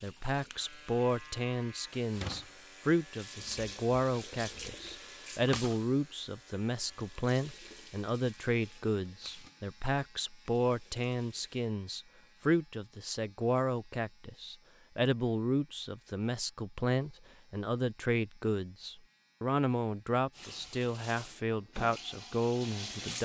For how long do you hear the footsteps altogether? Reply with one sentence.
The footsteps can't be heard in this clip.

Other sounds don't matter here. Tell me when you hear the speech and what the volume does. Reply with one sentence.
You can hear the speech from 0.0 to 23.2 s, at a steady volume.